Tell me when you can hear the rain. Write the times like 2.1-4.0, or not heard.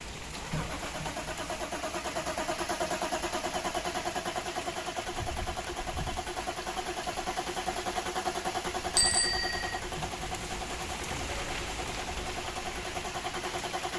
0.0-13.9.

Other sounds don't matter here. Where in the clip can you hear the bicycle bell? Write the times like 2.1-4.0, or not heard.
8.9-9.8.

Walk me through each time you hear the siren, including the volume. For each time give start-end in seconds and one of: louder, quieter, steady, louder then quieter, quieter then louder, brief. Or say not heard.
not heard.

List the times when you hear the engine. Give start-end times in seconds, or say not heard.
0.3-13.9.